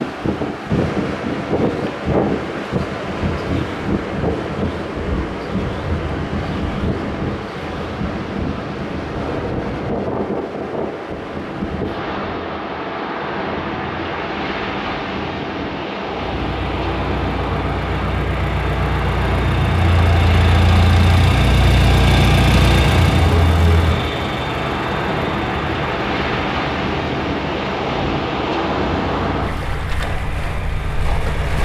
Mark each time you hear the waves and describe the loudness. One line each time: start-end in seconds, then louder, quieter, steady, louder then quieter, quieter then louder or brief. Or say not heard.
0.0-31.5 steady.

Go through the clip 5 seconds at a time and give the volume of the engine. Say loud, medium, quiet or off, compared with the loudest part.
off, off, off, medium, loud, medium, medium.